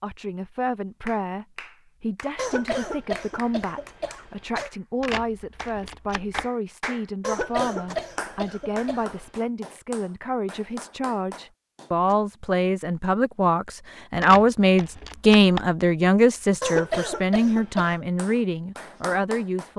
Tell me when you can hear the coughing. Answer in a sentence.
The coughing can be heard from 2.4 to 4.7 s, from 7.2 to 9.3 s and from 16.6 to 18.1 s.